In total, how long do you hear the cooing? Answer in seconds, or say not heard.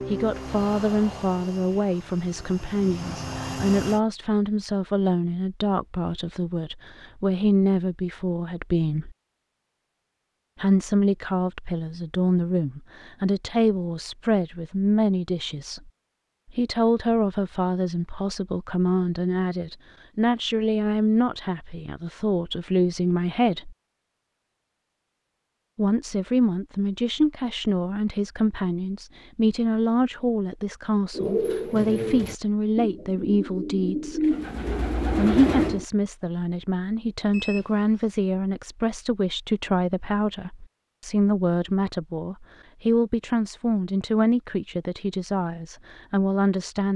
5 s.